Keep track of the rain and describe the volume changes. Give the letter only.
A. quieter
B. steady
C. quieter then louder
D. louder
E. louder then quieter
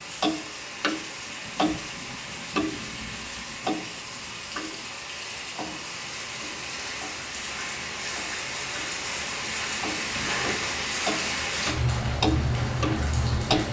D.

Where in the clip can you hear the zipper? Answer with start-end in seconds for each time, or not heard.
9.9-10.8.